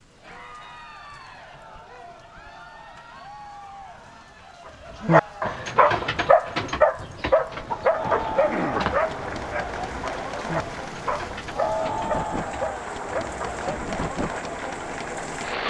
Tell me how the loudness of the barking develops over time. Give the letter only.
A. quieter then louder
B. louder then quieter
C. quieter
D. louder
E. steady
C.